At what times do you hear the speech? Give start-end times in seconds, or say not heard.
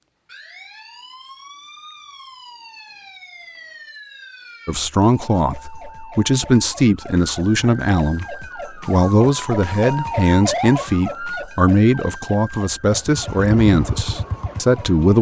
4.7-15.1.